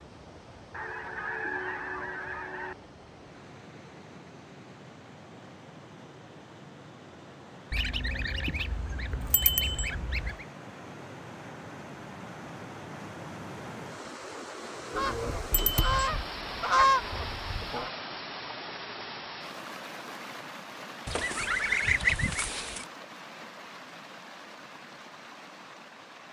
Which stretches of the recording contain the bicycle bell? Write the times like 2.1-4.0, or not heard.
9.3-9.9, 15.5-16.1.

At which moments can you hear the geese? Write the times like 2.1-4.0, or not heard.
0.7-2.8, 7.7-10.4, 14.9-17.9, 21.1-22.9.